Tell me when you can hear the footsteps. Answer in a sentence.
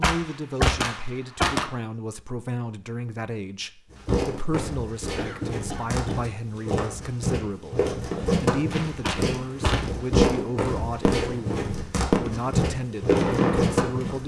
You can hear the footsteps from 3.9 to 14.2 s.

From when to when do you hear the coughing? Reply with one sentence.
The coughing can be heard from 5.1 to 6.2 s.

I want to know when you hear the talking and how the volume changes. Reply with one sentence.
The talking can be heard from 0.0 to 14.2 s, at a steady volume.